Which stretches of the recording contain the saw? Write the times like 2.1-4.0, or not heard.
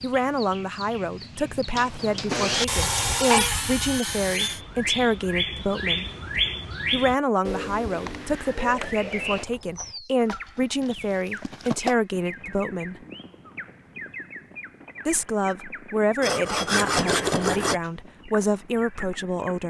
1.8-4.6, 16.2-17.8.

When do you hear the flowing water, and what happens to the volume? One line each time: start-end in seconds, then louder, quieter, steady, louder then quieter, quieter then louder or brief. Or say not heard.
not heard.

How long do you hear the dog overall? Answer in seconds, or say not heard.
not heard.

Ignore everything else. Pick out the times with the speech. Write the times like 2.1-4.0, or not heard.
0.0-6.0, 6.9-13.0, 15.1-19.6.